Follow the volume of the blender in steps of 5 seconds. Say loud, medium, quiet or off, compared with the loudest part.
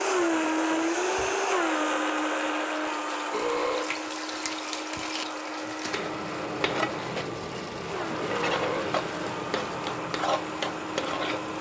loud, medium, medium.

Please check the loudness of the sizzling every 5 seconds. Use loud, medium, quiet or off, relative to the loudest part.
medium, loud, loud.